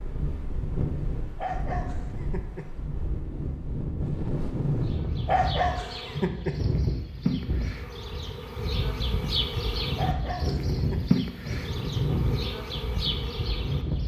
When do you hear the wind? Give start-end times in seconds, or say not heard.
0.0-14.0.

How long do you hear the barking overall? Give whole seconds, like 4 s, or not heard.
4 s.